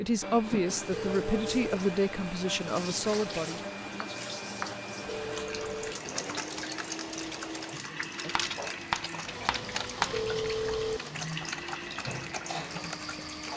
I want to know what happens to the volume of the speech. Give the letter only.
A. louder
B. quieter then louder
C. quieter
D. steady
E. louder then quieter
D.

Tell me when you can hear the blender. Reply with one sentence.
You can hear the blender from 0.0 to 13.5 s.